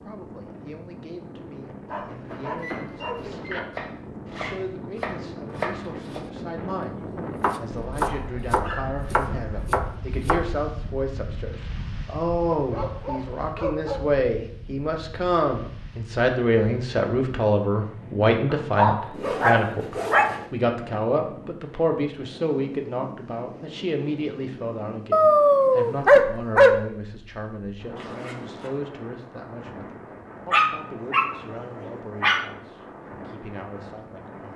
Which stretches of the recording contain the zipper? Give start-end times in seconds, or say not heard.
4.2-4.7, 19.1-20.5, 27.9-28.8.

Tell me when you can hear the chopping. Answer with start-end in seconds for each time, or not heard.
2.2-10.5.